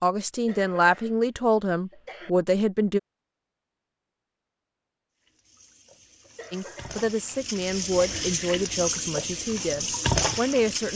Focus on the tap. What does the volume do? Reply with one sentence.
The loudness of the tap goes up.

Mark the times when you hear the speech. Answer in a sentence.
You can hear the speech from 0.0 to 3.0 s and from 6.5 to 10.9 s.